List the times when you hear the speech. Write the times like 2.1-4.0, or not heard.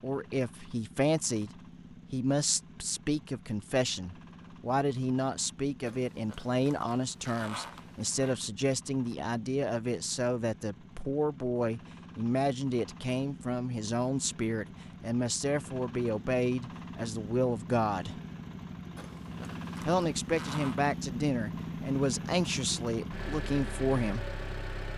0.0-1.5, 2.1-18.2, 19.9-24.2.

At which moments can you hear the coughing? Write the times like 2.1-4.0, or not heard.
not heard.